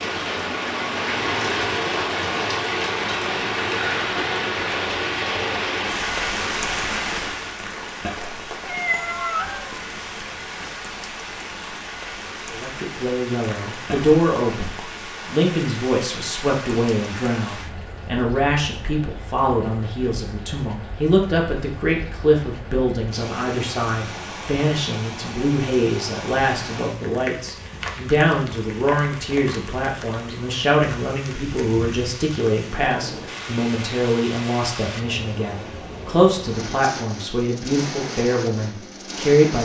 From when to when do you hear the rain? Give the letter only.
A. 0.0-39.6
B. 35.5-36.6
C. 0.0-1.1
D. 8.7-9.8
A.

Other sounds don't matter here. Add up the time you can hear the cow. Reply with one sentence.
The cow can't be heard in this clip.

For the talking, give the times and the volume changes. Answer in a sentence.
The talking can be heard from 12.5 to 39.6 s, at a steady volume.